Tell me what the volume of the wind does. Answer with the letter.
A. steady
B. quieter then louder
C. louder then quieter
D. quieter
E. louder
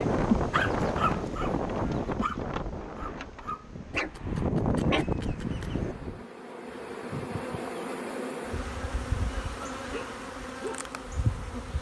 B.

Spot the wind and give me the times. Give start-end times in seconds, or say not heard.
0.0-6.2.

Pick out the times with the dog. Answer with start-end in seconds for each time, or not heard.
0.5-6.0.